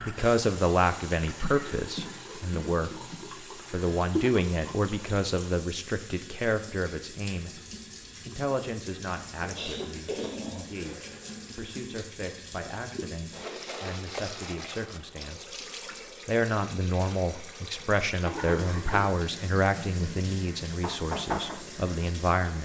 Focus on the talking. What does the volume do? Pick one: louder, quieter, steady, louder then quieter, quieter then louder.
quieter then louder.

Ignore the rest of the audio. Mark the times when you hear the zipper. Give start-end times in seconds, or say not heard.
not heard.